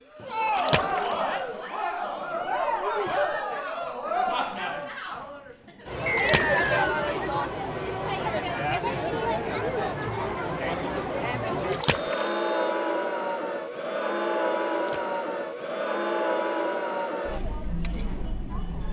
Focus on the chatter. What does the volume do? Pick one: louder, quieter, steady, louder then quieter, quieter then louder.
steady.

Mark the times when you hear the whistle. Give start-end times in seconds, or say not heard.
6.0-7.1, 12.1-12.8.